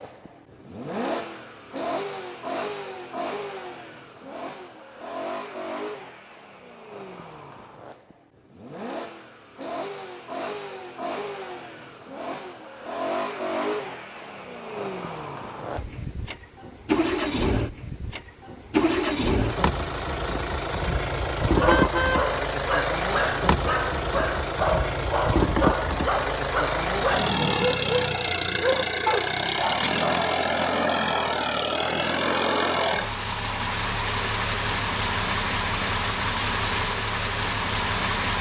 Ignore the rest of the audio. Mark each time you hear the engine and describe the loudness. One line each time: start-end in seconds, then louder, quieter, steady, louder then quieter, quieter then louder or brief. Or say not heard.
0.0-38.3 louder.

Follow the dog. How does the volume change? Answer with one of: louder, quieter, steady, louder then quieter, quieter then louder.
steady.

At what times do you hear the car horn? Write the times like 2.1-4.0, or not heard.
21.6-22.3.